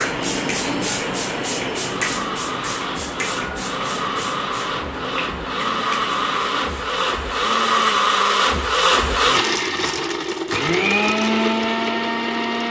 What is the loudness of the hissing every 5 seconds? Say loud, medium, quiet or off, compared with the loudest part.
loud, medium, off.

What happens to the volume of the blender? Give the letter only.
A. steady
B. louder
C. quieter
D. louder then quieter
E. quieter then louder
B.